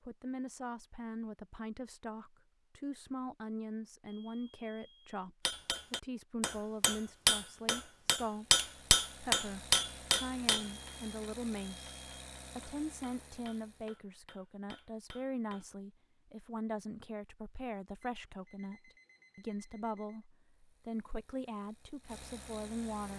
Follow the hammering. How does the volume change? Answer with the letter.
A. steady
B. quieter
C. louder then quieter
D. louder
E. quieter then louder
B.